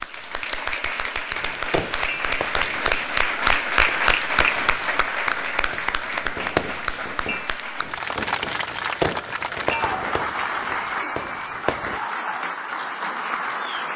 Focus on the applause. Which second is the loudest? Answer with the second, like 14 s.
4 s.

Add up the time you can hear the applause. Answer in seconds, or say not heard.
14 s.